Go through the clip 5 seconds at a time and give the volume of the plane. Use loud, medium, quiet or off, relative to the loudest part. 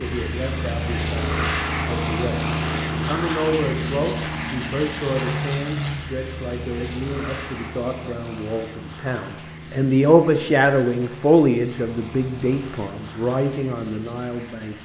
loud, medium, quiet.